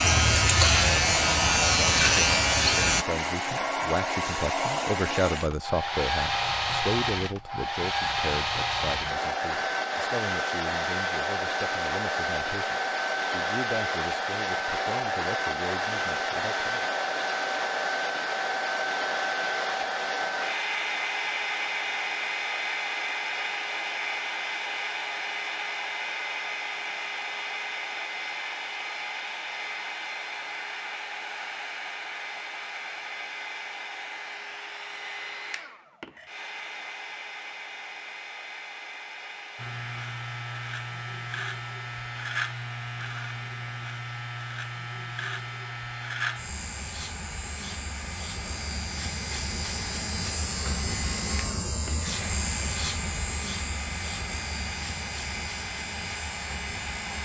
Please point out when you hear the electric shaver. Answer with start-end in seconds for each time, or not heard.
0.0-3.0, 39.5-57.2.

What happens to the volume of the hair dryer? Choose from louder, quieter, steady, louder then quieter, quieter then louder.
quieter.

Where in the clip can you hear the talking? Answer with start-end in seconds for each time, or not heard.
0.0-16.9.